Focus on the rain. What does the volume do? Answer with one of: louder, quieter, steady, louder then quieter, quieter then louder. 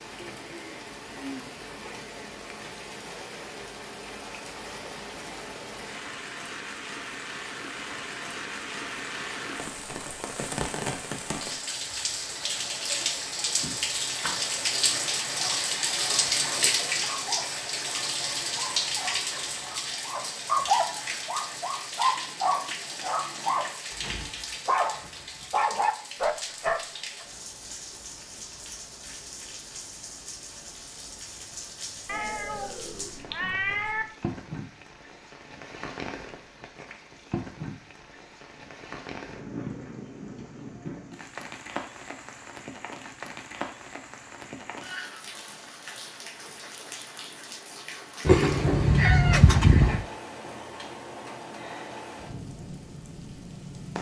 louder then quieter.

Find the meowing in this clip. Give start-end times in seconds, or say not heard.
13.6-14.4, 32.0-34.0, 48.2-50.0.